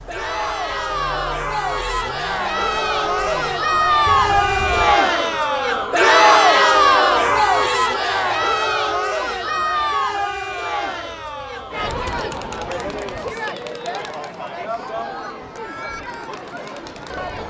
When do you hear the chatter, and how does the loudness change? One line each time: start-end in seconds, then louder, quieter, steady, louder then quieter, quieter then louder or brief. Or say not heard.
0.1-17.4 louder then quieter.